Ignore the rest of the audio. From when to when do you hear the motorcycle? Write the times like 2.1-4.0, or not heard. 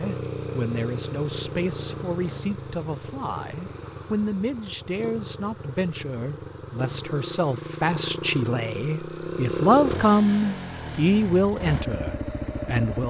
0.0-13.0.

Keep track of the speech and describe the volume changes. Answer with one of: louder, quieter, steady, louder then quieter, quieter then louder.
louder.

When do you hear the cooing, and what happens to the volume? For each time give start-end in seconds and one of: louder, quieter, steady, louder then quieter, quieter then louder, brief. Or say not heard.
not heard.